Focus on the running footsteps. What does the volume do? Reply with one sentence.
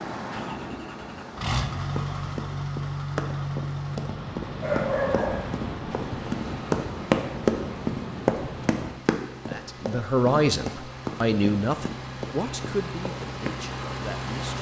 The volume of the running footsteps goes up, then down.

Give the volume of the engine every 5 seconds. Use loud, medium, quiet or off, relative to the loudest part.
loud, medium, loud.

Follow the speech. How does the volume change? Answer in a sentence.
The volume of the speech goes down.